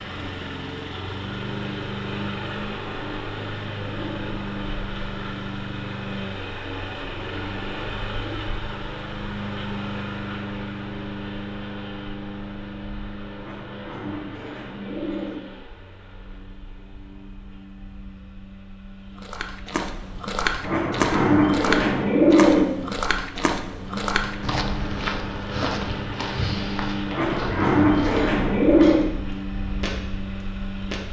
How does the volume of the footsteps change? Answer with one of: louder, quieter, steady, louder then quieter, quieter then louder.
quieter.